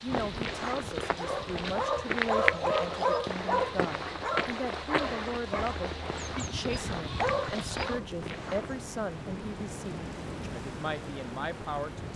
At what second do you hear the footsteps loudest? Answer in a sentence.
The loudest moment of the footsteps is at 2 seconds.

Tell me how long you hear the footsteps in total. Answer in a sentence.
The footsteps can be heard for 9 seconds in total.